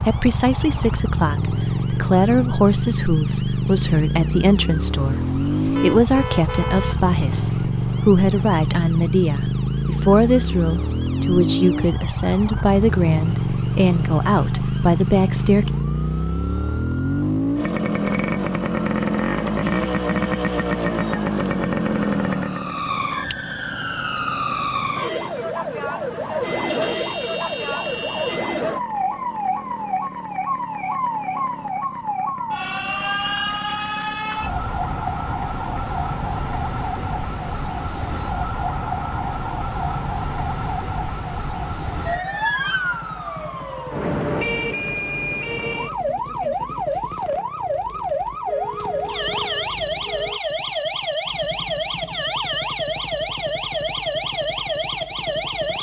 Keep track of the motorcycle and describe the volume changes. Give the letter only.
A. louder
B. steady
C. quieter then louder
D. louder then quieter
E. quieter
E.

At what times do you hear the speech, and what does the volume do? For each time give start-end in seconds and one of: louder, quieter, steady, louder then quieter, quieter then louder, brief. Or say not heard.
0.1-15.7 steady.